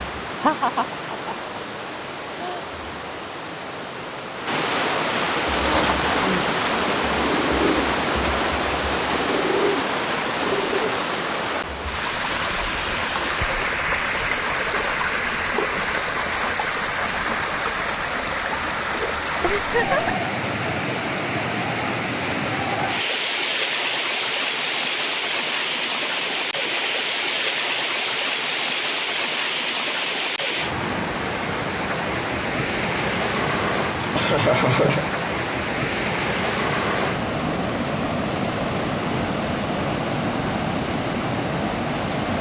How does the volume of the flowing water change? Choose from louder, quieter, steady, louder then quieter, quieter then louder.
steady.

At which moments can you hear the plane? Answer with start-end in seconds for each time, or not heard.
not heard.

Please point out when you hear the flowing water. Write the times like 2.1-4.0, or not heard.
0.0-42.3.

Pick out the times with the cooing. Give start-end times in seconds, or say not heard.
5.5-11.0.